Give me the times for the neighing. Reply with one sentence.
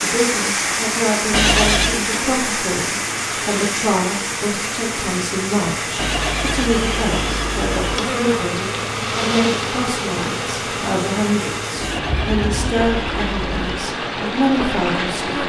You can hear the neighing from 1.3 to 2.0 s, from 6.0 to 8.0 s and from 11.8 to 13.8 s.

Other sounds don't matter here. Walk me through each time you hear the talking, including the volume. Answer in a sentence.
You can hear the talking from 0.0 to 15.4 s, at a steady volume.